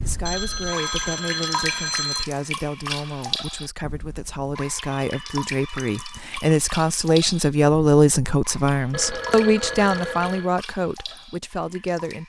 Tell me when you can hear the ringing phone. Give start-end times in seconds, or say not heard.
0.2-2.2, 4.9-6.3, 8.9-10.5.